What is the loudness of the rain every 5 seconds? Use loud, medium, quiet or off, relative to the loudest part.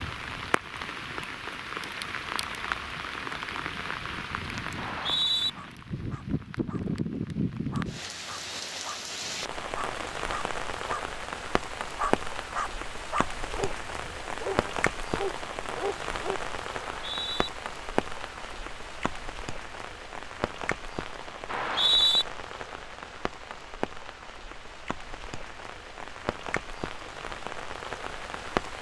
loud, loud, loud, loud, medium, loud.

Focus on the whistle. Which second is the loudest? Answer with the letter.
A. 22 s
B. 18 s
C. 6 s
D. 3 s
A.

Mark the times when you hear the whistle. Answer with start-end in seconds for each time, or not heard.
4.8-5.5, 16.9-17.5, 21.4-22.2.